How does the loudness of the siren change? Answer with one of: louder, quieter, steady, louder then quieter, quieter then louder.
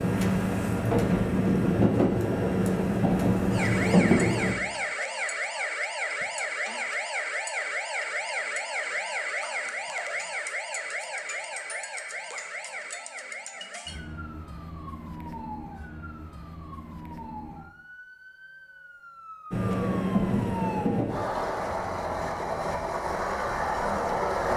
quieter.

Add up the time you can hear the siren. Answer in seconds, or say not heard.
21 s.